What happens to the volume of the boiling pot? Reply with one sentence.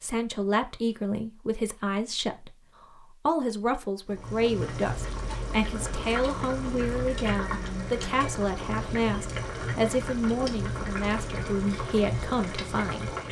The loudness of the boiling pot stays about the same.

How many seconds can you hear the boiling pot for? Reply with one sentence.
You can hear the boiling pot for 9 seconds altogether.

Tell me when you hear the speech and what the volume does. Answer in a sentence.
You can hear the speech from 0.0 to 13.2 s, at a steady volume.